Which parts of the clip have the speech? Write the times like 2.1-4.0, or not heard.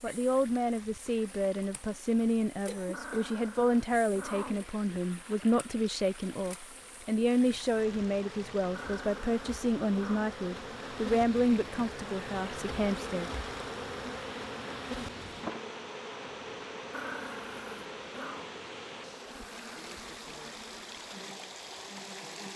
0.0-13.3.